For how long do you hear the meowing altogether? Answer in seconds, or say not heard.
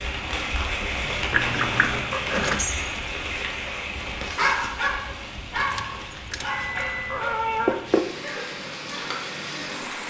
3 s.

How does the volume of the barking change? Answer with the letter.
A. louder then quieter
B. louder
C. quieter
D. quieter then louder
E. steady
C.